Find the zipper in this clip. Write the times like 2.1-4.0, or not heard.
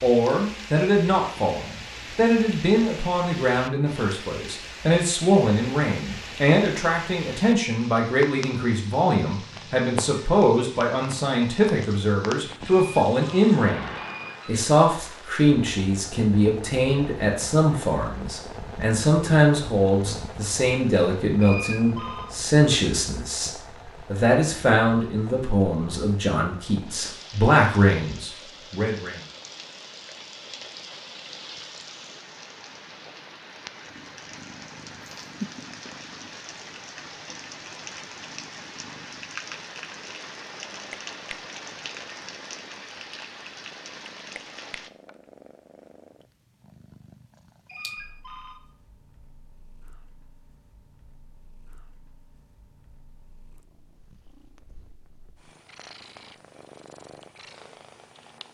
not heard.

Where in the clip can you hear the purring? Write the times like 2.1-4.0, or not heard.
33.9-58.4.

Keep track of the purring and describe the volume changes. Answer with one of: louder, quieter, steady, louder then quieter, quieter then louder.
quieter then louder.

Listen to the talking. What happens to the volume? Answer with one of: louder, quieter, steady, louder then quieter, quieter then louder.
steady.